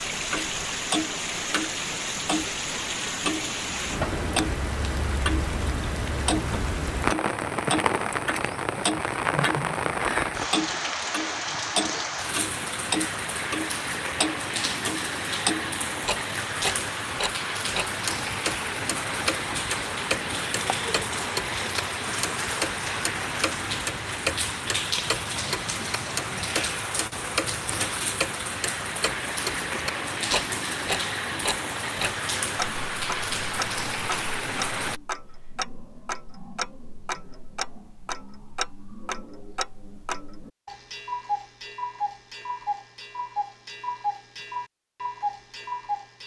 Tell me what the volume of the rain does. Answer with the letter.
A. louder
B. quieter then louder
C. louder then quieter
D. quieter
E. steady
E.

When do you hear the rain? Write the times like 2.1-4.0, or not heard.
0.0-35.0.